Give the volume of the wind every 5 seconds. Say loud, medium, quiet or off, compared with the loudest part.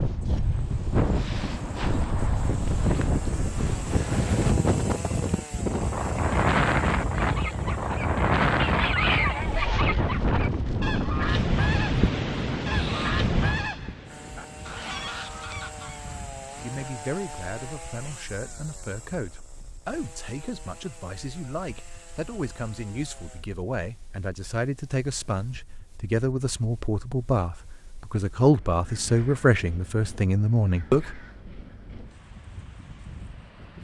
loud, loud, loud, quiet, quiet, quiet, quiet.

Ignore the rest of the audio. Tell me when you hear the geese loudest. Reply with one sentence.
The volume of the geese peaks at 9 seconds.